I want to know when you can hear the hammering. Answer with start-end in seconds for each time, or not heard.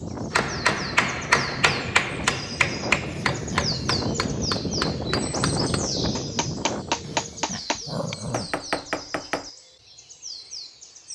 0.3-9.5.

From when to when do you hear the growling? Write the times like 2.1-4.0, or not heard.
3.0-3.8, 7.0-8.6.